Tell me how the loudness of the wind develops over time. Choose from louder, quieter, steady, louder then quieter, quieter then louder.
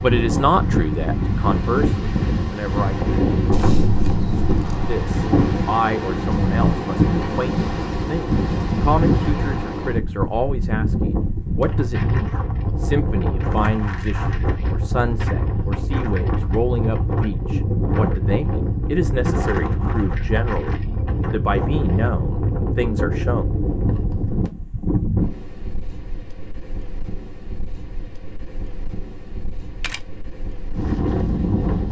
quieter.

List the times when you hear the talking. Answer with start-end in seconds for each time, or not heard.
0.0-3.1, 4.8-23.4.